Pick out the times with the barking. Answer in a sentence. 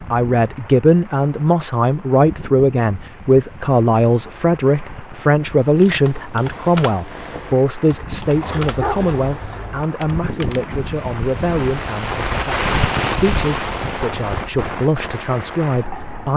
You can hear the barking from 8.4 to 9.8 s.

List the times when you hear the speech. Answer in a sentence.
You can hear the speech from 0.1 to 16.3 s.